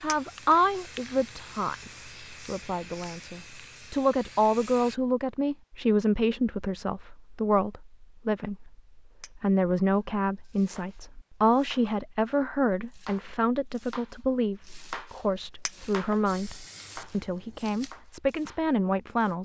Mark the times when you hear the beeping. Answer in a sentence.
You can't hear the beeping here.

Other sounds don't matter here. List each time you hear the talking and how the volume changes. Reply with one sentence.
The talking can be heard from 0.0 to 19.4 s, at a steady volume.